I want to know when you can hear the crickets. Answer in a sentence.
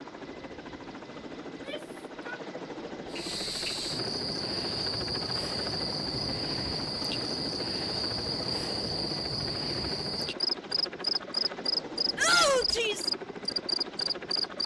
The crickets can be heard from 3.1 to 14.6 s.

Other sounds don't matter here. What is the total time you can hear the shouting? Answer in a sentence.
The shouting can be heard for 2 seconds in total.